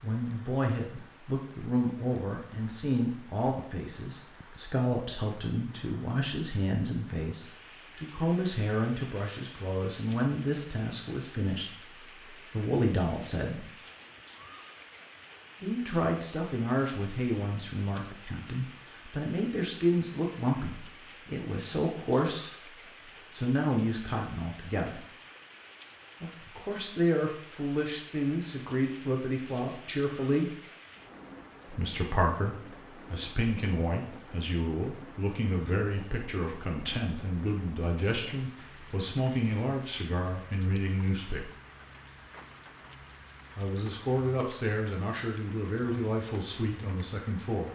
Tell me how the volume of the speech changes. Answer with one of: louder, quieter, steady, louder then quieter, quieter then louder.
steady.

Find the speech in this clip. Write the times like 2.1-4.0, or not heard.
0.0-13.7, 15.6-25.1, 26.2-30.6, 31.6-41.5, 43.5-47.6.